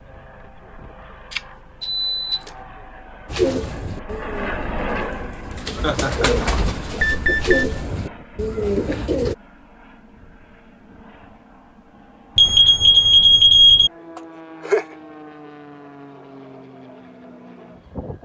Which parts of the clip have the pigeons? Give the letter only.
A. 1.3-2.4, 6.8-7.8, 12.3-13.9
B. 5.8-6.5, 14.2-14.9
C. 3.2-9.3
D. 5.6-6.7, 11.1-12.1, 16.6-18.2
C.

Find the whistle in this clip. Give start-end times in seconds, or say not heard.
not heard.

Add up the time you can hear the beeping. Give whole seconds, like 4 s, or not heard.
4 s.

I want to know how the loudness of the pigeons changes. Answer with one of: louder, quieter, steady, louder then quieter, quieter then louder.
louder.